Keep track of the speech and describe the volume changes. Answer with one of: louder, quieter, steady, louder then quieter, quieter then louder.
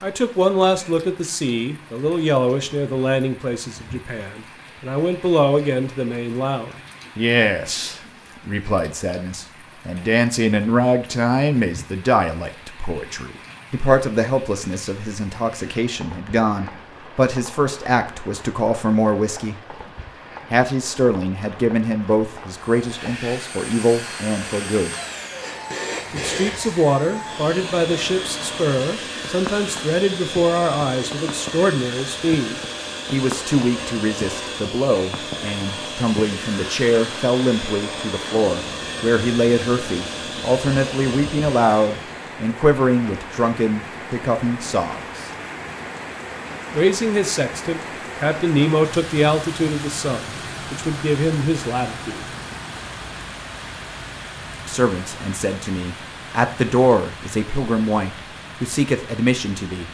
steady.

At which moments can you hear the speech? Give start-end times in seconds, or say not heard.
0.0-19.6, 20.5-24.9, 26.1-45.3, 46.7-52.2, 54.6-59.8.